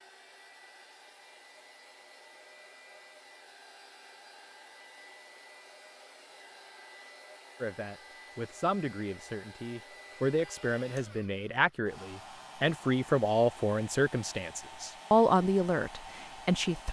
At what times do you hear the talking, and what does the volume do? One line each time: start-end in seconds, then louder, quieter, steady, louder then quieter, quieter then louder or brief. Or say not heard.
7.6-16.8 louder.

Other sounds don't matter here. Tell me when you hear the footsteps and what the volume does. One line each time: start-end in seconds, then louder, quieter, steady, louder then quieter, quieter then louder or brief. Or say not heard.
not heard.